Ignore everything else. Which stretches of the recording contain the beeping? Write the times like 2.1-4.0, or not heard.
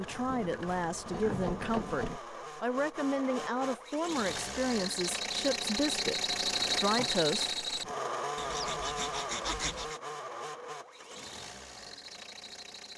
not heard.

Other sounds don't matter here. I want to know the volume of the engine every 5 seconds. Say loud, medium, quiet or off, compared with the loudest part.
medium, loud, medium.